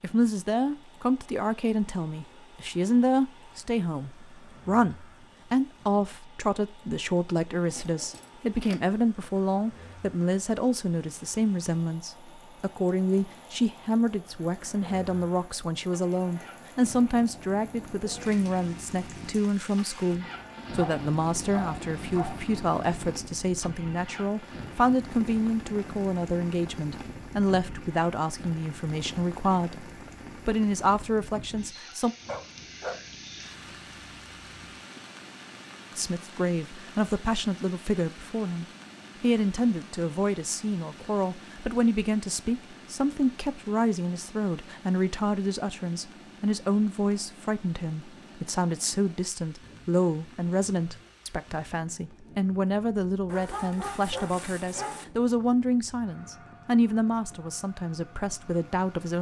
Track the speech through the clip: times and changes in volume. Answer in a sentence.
The speech can be heard from 0.0 to 32.1 s, at a steady volume; and from 36.0 to 59.1 s, at a steady volume.